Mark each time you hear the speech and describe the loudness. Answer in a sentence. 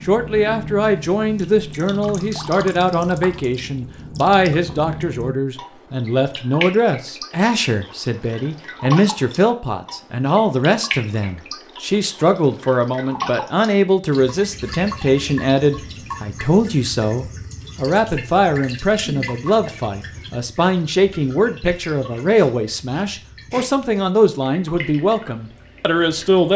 You can hear the speech from 0.0 to 26.5 s, at a steady volume.